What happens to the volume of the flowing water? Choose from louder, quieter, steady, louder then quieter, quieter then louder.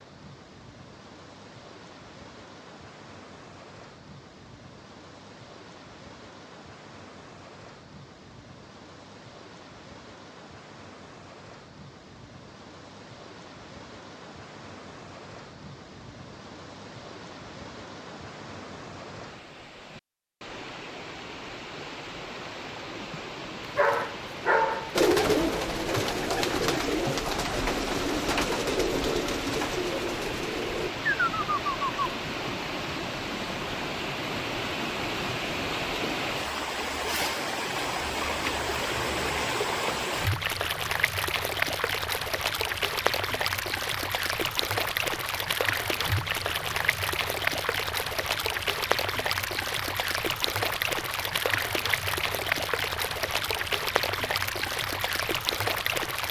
louder.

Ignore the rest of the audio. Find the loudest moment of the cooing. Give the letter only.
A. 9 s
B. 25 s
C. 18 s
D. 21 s
B.